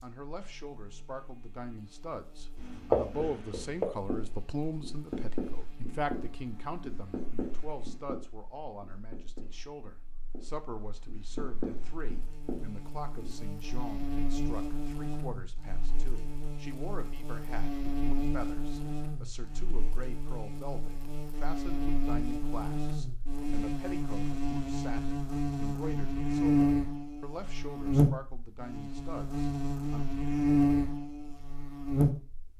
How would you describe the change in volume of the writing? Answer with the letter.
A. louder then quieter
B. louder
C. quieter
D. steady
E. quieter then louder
E.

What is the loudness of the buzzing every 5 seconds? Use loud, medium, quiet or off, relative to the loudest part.
quiet, quiet, quiet, medium, medium, loud, loud.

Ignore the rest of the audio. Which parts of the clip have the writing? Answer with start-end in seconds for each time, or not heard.
2.5-13.5.